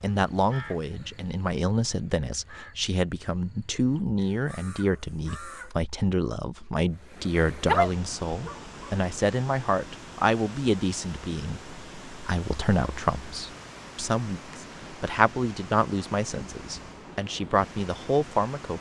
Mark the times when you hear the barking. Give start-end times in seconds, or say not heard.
7.7-8.9.